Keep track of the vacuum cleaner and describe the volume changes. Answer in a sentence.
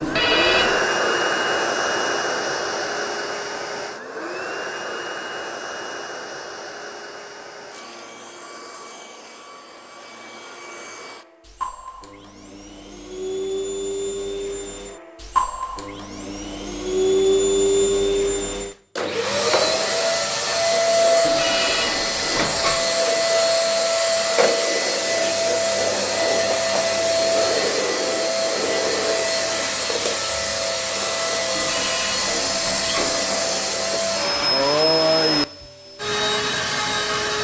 The loudness of the vacuum cleaner goes down, then up.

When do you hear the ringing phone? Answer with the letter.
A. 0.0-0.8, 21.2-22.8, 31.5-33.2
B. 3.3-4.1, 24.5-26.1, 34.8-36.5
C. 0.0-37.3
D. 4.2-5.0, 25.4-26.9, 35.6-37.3
A.